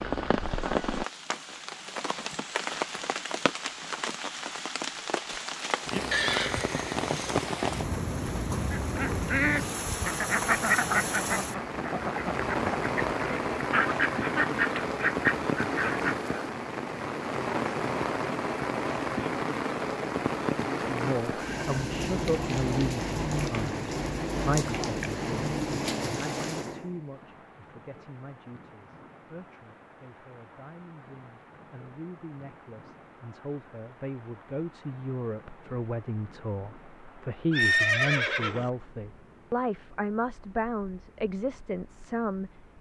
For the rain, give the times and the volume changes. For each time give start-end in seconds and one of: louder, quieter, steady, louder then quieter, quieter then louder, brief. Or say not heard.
0.0-42.7 quieter.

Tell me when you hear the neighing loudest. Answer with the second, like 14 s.
38 s.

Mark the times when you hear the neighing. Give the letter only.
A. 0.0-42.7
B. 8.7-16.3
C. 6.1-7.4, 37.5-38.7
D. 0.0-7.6
C.